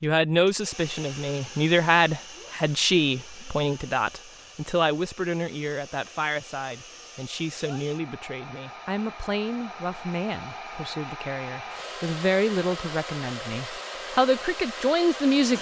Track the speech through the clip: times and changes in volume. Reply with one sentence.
The speech can be heard from 0.0 to 15.5 s, getting quieter then louder.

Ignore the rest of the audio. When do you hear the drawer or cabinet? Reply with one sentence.
You can't hear the drawer or cabinet here.